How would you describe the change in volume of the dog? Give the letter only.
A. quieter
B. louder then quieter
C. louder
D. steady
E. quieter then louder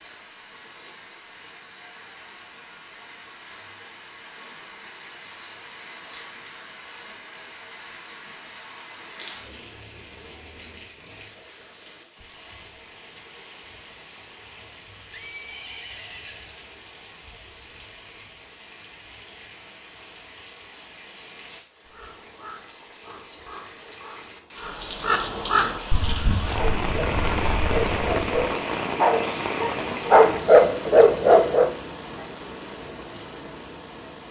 C.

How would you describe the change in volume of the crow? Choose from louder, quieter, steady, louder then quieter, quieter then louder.
louder then quieter.